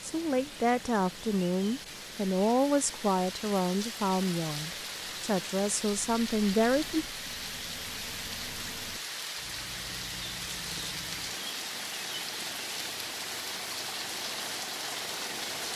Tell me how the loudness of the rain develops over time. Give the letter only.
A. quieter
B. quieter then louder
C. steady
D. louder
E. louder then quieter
D.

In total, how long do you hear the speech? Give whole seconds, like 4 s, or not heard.
7 s.